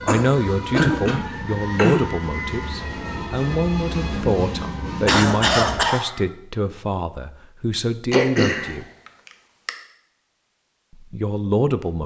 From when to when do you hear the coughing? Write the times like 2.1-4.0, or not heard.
0.1-2.0, 4.6-6.0, 8.1-9.7.